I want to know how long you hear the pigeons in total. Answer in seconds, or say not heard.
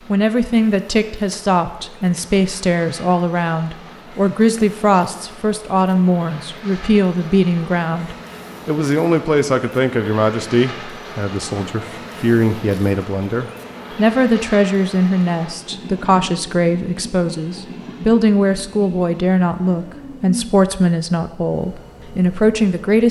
not heard.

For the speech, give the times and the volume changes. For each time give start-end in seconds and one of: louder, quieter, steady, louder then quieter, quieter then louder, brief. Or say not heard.
0.1-23.0 steady.